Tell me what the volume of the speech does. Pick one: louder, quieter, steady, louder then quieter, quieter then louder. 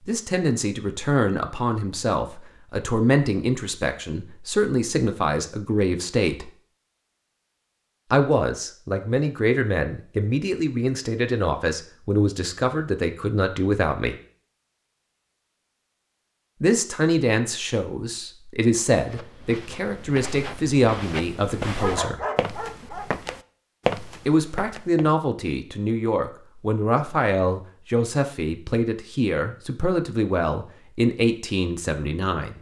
steady.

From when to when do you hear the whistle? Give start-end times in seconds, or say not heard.
not heard.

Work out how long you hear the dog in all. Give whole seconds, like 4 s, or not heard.
2 s.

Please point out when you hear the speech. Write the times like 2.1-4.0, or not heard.
0.1-6.5, 8.1-14.2, 16.6-22.2, 24.2-32.5.